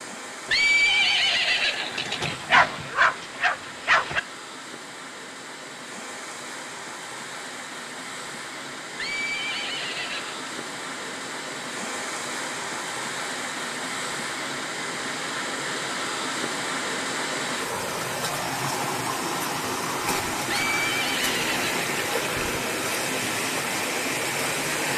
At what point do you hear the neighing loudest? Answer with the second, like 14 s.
1 s.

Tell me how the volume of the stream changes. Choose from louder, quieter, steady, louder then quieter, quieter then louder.
louder.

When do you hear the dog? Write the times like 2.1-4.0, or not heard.
2.2-4.2.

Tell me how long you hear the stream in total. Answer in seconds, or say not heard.
25 s.